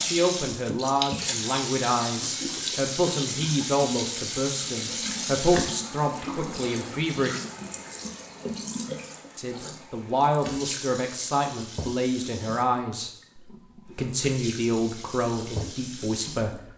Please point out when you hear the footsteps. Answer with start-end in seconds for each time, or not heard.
not heard.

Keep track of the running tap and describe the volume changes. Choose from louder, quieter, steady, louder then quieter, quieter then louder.
quieter.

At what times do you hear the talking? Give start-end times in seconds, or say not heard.
0.0-7.3, 9.3-16.7.